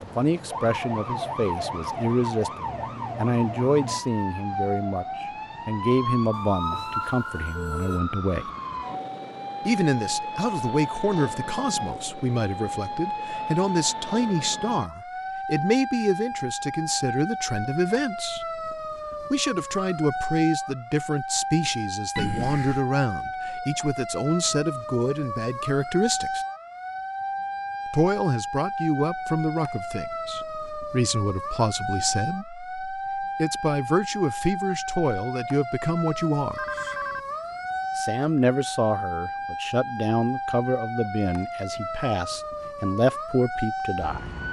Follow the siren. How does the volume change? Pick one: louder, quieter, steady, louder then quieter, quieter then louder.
steady.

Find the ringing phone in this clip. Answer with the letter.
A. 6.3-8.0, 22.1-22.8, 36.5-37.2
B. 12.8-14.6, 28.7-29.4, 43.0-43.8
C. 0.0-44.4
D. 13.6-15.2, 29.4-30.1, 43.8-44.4
A.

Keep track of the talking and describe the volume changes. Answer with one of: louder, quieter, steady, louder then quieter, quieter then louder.
steady.